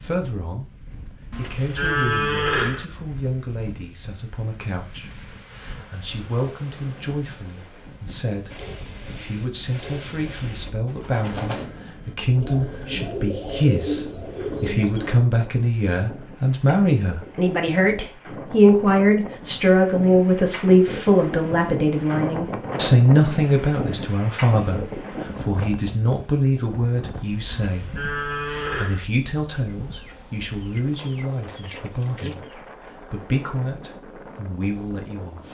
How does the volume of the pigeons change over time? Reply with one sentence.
The loudness of the pigeons goes up.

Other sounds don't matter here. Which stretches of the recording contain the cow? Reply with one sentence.
The cow can be heard from 1.3 to 2.9 s and from 27.5 to 29.1 s.